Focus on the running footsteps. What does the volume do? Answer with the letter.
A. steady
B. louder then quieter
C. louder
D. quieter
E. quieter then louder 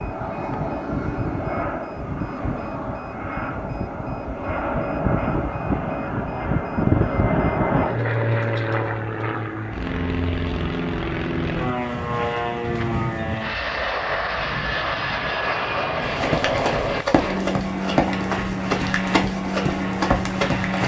A.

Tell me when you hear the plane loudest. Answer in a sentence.
The loudest moment of the plane is at 7 seconds.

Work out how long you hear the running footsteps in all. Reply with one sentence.
You can hear the running footsteps for 5 seconds altogether.